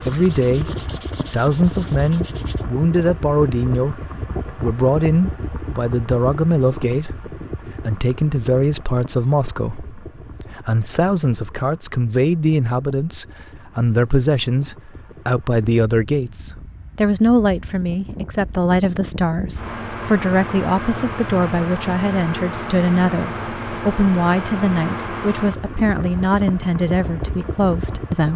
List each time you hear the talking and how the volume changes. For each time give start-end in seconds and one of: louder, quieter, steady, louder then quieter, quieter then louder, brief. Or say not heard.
0.0-0.7 brief
1.3-28.3 steady.